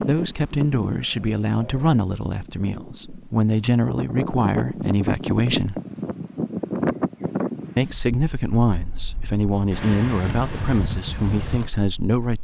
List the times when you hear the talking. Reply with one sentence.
You can hear the talking from 0.1 to 5.8 s and from 7.8 to 12.4 s.